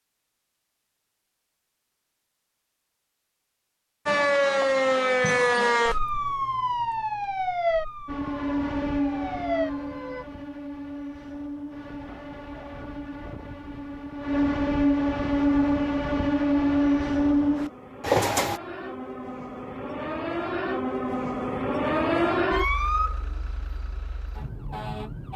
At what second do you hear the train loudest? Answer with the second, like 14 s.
17 s.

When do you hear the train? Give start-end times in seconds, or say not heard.
8.1-18.6.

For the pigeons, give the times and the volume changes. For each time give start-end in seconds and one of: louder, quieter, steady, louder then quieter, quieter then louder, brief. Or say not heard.
not heard.